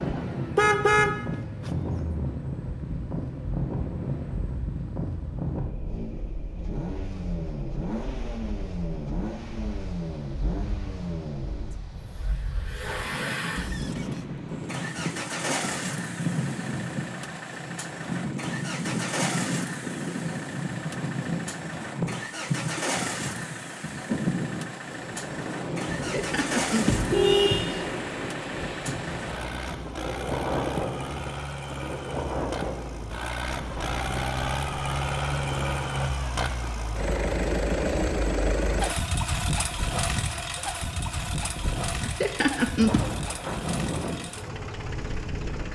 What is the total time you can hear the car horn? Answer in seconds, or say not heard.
4 s.